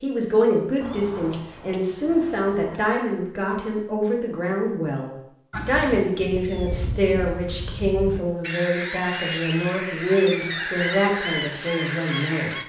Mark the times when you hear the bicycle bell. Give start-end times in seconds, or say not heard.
0.8-2.8.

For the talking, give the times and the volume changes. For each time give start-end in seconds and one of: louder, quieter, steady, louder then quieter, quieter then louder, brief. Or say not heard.
0.0-12.6 steady.